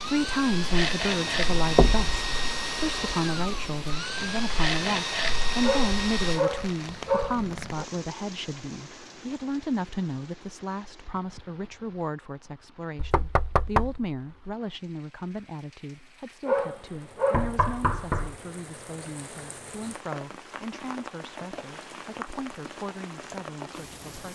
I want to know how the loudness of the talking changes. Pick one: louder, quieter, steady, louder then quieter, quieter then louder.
quieter.